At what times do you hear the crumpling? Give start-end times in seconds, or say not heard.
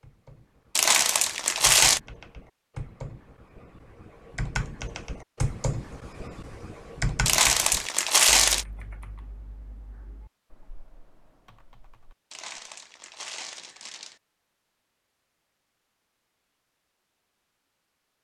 0.8-2.0, 7.2-8.7, 12.3-14.2.